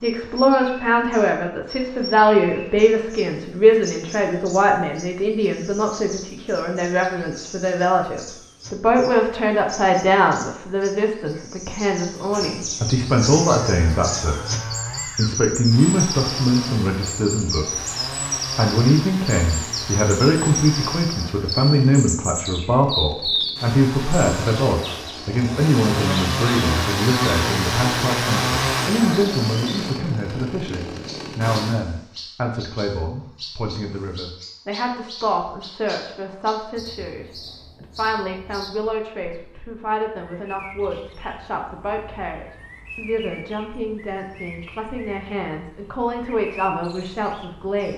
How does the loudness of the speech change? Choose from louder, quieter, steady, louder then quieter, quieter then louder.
quieter.